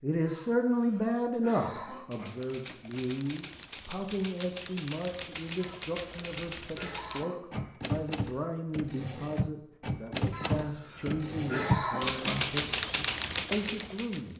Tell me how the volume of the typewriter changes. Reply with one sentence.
The volume of the typewriter goes up.